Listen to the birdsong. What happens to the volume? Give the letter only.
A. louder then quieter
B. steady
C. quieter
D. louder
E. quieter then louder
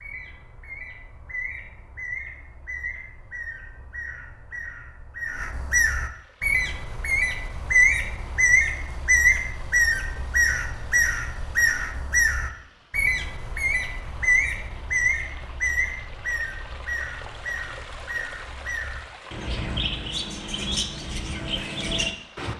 A.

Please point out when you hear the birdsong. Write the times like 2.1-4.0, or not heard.
0.0-22.5.